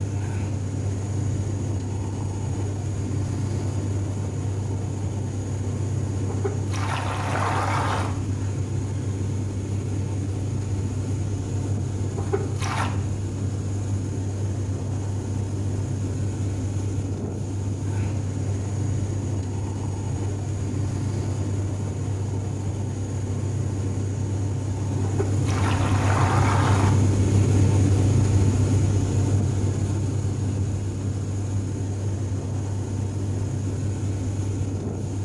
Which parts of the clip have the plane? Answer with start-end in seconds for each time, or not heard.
0.0-35.1.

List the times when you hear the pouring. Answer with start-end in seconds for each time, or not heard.
6.2-8.2, 12.2-12.9, 25.0-26.9.